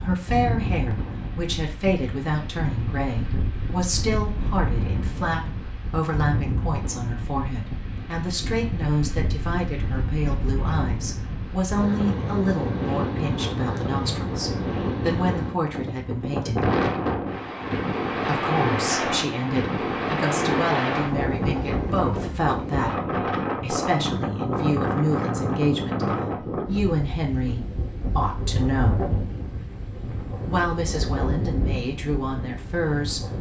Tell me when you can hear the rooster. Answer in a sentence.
The rooster can't be heard in this clip.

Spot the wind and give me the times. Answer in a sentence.
The wind can be heard from 0.0 to 33.3 s.